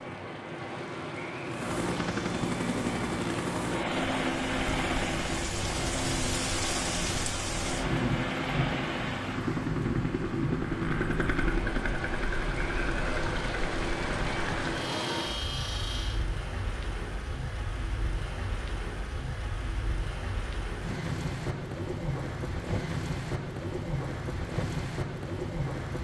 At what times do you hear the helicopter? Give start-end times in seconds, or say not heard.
1.4-16.2.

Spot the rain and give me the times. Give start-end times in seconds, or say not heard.
0.0-26.0.